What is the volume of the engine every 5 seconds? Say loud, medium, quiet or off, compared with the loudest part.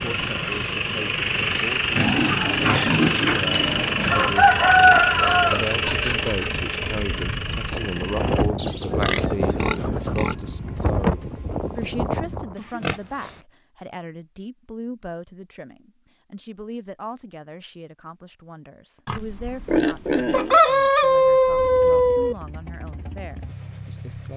loud, loud, off, off, quiet.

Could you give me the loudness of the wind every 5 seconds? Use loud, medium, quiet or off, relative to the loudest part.
medium, loud, loud, off, off.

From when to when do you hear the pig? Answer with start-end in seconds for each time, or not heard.
1.9-4.3, 8.6-10.3, 12.6-13.4, 19.1-20.6.